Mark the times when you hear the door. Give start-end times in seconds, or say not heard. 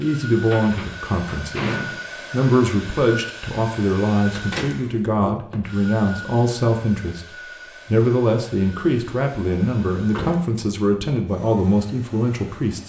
0.4-2.2, 4.3-5.3, 9.4-10.4.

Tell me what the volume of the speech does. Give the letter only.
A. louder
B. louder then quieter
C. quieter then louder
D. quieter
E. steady
E.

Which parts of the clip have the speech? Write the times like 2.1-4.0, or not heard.
0.0-12.8.